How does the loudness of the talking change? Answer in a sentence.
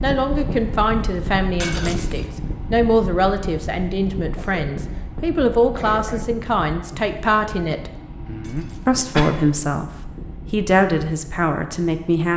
The volume of the talking stays about the same.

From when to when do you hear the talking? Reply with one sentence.
The talking can be heard from 0.0 to 7.9 s and from 8.8 to 12.3 s.